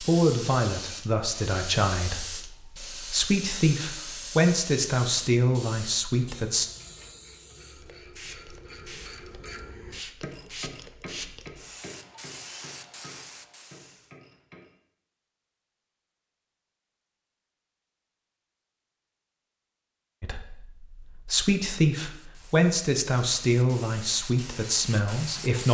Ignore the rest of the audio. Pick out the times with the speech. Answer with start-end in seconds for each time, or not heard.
0.0-6.7, 20.2-25.7.